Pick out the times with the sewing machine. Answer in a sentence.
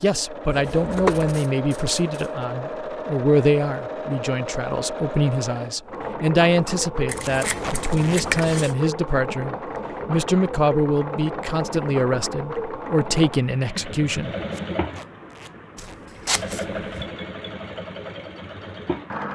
The sewing machine can be heard from 0.0 to 19.3 s.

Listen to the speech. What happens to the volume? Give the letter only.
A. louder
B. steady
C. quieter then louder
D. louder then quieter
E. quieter
B.